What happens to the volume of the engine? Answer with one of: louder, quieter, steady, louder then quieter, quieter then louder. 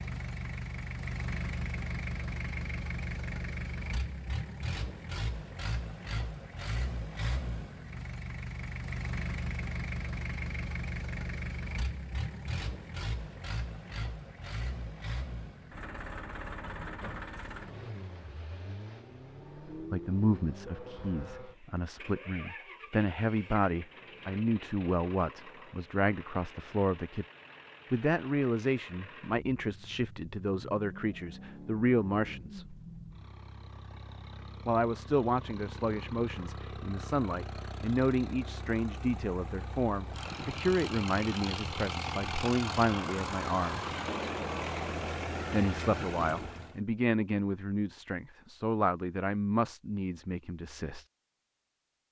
quieter then louder.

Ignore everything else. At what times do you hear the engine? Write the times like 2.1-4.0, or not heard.
0.0-46.8.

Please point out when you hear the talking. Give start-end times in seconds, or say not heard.
19.9-27.2, 27.9-32.8, 34.6-43.9, 45.5-51.0.